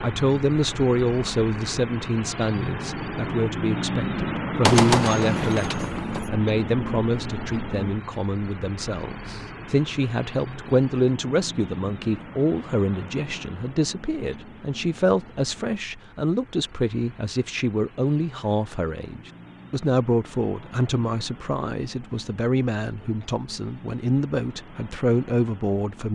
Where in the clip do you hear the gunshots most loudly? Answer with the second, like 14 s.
5 s.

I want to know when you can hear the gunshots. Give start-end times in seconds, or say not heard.
4.6-6.3.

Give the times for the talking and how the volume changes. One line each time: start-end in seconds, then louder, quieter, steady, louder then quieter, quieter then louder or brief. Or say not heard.
0.0-26.1 steady.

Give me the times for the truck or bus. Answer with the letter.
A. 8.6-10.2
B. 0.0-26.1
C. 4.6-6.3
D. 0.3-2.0
B.